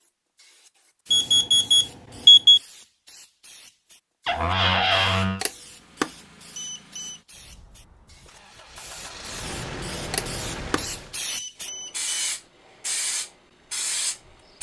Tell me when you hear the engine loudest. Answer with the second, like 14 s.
10 s.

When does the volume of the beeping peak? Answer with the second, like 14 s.
2 s.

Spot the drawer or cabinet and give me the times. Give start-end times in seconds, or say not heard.
4.2-5.5.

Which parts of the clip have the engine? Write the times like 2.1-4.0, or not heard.
5.5-11.2.